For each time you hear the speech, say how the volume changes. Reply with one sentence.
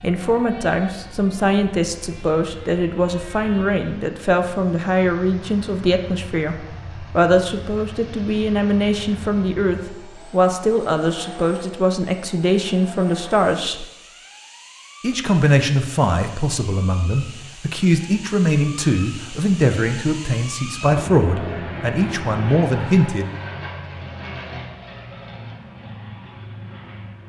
You can hear the speech from 0.0 to 13.8 s, at a steady volume; and from 15.0 to 23.3 s, at a steady volume.